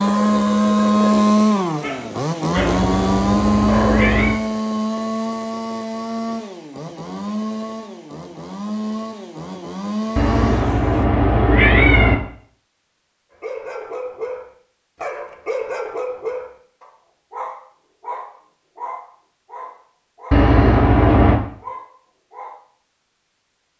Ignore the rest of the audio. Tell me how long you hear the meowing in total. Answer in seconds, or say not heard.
5 s.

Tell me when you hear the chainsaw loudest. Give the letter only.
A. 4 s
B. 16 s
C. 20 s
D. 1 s
D.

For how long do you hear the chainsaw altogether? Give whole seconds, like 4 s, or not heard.
11 s.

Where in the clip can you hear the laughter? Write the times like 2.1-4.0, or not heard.
not heard.